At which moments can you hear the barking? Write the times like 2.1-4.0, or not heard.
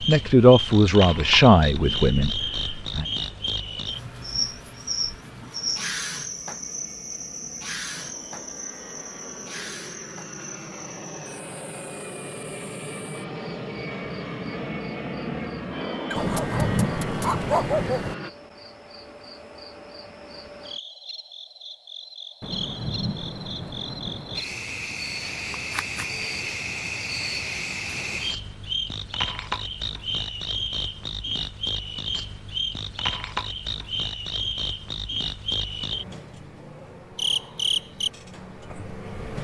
16.1-18.1.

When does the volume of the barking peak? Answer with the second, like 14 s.
18 s.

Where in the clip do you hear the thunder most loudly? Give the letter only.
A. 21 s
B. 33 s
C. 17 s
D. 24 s
C.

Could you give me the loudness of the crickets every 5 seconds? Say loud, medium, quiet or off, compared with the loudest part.
loud, loud, quiet, quiet, medium, loud, loud, loud.